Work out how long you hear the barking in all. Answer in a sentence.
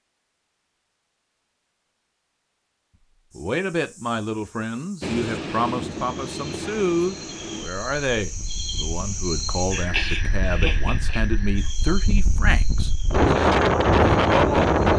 The barking can't be heard in this clip.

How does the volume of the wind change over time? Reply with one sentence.
The volume of the wind goes down, then up.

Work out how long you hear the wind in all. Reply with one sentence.
The wind can be heard for 10 seconds in total.